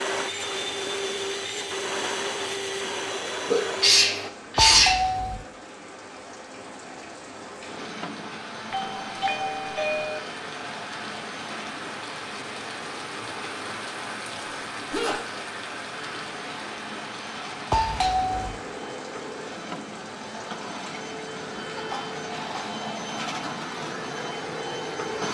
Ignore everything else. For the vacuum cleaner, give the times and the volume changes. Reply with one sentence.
The vacuum cleaner can be heard from 0.0 to 4.3 s, at a steady volume; from 7.6 to 13.7 s, getting quieter; and from 15.9 to 25.2 s, getting louder.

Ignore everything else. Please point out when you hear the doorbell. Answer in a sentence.
You can hear the doorbell from 4.5 to 5.5 s, from 8.7 to 10.2 s and from 17.7 to 18.6 s.